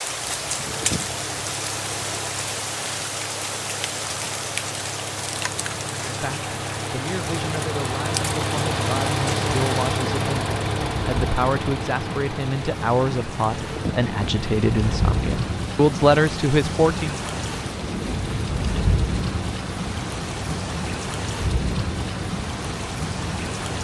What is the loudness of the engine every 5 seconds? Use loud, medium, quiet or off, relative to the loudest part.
medium, loud, loud, medium, medium.